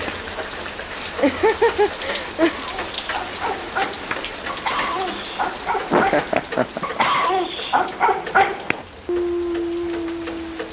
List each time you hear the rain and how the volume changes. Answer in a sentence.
The rain can be heard from 0.0 to 10.6 s, getting quieter.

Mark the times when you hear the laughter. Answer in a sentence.
The laughter can be heard from 1.2 to 2.6 s and from 5.9 to 7.0 s.